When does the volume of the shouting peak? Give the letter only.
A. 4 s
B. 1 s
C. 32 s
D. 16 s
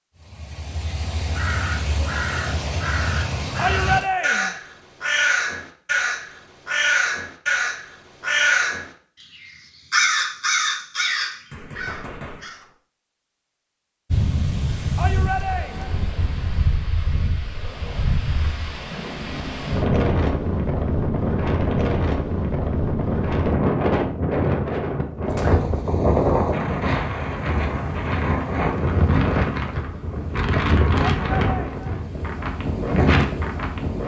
A.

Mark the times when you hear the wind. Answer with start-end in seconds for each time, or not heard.
14.1-34.0.